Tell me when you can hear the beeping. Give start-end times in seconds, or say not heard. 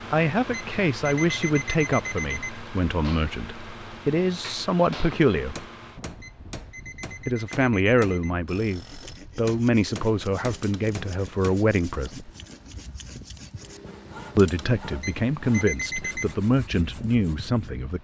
0.5-2.6, 6.2-8.3, 15.0-16.4.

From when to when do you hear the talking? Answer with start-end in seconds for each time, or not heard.
0.1-5.7, 7.2-12.3, 14.3-17.9.